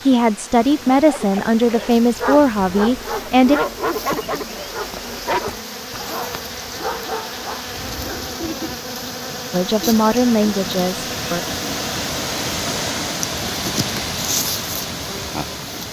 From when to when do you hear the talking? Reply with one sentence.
The talking can be heard from 0.0 to 3.6 s and from 9.5 to 11.4 s.